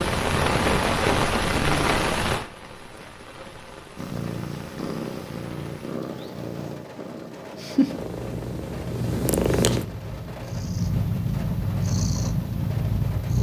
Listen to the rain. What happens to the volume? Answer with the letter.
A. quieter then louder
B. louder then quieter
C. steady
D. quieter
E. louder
D.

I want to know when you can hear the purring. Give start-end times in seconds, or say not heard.
4.0-13.3.